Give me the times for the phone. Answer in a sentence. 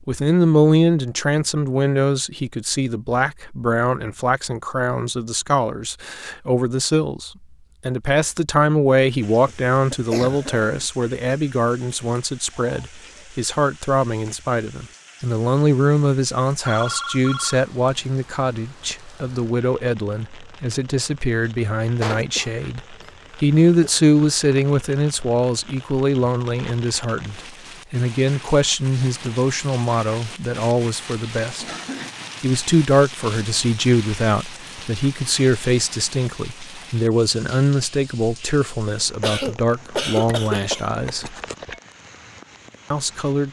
You can hear the phone from 11.9 to 12.8 s, from 16.6 to 17.6 s and from 40.2 to 41.8 s.